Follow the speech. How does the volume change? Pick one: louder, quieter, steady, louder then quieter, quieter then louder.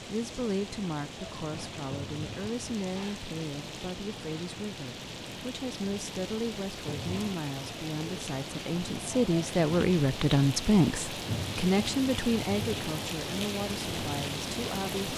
louder then quieter.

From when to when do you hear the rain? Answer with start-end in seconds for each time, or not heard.
0.0-15.1.